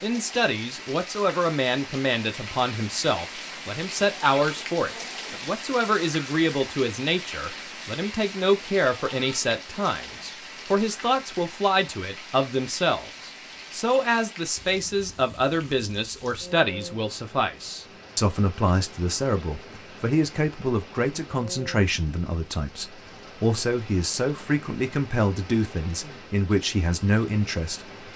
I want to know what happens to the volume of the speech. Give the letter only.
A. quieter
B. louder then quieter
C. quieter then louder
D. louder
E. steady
E.